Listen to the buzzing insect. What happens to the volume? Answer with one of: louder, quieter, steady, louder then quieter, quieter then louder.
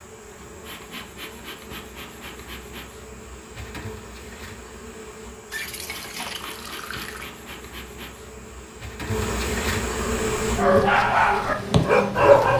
louder.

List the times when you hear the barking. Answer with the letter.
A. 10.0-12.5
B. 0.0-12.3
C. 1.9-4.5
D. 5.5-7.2
A.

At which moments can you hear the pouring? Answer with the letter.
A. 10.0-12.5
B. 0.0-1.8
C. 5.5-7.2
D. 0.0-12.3
C.